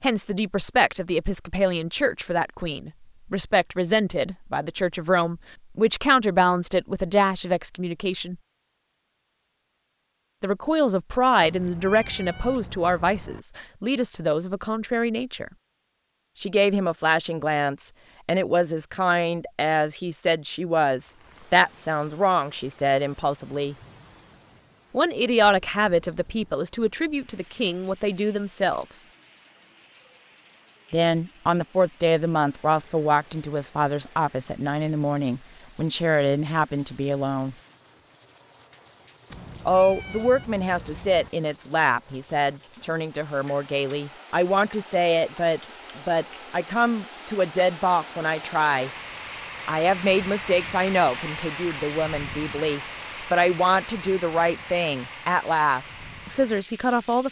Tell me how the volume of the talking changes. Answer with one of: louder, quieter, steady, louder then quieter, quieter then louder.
steady.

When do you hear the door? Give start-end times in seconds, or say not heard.
not heard.